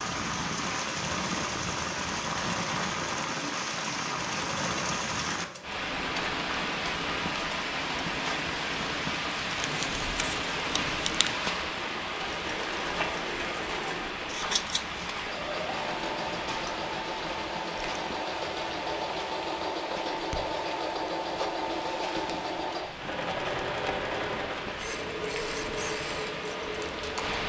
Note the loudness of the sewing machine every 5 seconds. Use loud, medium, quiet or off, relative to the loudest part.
medium, medium, medium, loud, loud, loud.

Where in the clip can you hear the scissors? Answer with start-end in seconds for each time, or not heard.
9.6-11.3, 14.2-15.0.